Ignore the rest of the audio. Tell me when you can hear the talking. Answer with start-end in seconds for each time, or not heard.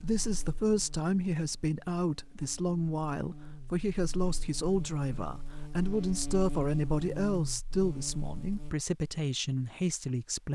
0.0-10.5.